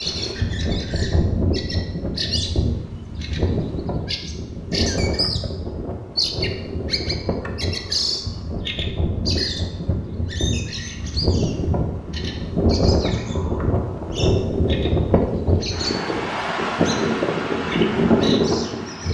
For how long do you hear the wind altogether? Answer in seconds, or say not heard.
19 s.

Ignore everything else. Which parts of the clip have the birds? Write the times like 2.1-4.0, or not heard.
0.0-19.0.